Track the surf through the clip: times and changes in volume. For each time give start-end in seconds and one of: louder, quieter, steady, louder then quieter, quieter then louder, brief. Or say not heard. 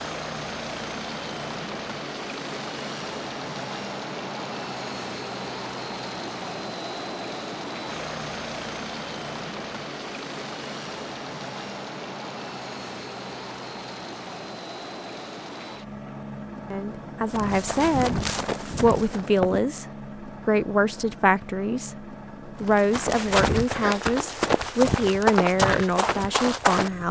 not heard.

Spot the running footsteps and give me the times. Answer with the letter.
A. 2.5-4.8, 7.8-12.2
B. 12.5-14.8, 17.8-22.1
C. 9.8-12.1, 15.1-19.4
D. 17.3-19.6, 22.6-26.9
D.